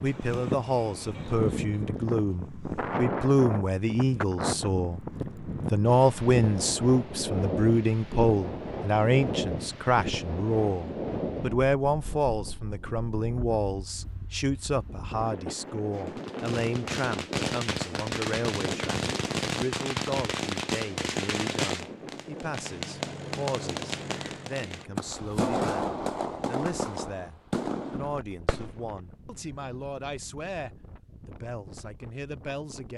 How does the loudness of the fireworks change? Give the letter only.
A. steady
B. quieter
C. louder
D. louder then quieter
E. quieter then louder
A.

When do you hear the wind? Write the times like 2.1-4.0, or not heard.
0.0-32.9.